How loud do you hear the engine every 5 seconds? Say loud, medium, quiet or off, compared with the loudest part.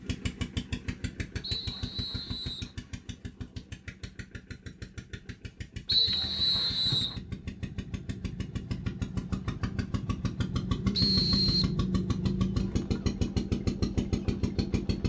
medium, medium, loud.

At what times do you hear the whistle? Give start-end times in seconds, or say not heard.
1.4-2.7, 5.8-7.2, 10.9-11.7.